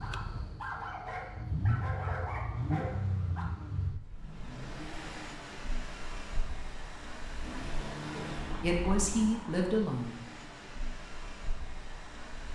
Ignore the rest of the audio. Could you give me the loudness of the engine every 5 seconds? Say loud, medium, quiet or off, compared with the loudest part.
loud, loud, medium.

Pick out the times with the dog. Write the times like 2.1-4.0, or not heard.
0.0-3.5.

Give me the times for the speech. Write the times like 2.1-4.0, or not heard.
8.1-10.2.